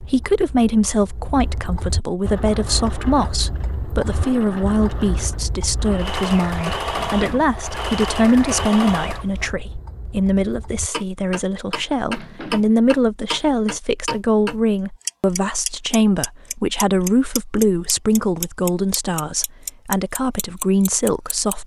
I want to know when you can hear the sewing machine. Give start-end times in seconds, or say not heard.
2.2-9.5.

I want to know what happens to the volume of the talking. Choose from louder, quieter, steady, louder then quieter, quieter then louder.
steady.